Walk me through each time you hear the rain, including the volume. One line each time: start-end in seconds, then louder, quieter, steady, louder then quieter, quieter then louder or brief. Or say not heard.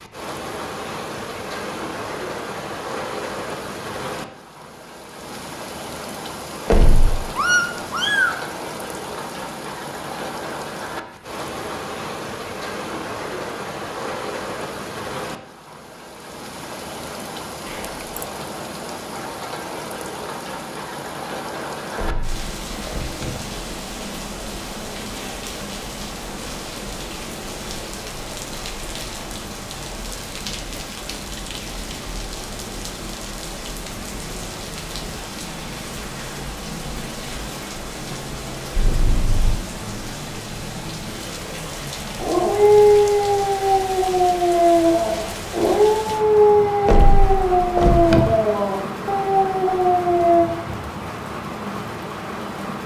0.0-52.8 steady.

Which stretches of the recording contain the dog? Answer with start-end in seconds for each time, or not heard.
42.1-50.5.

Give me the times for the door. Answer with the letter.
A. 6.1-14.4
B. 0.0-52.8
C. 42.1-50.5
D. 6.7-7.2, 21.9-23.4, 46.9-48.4
D.